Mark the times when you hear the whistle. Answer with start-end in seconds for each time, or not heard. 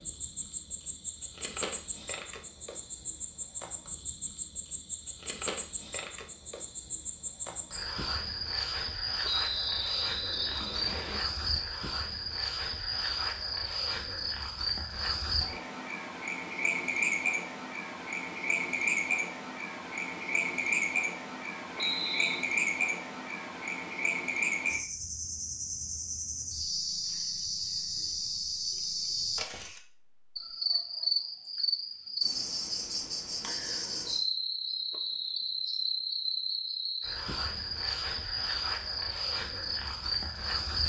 9.2-11.2, 21.8-22.4, 34.9-35.5.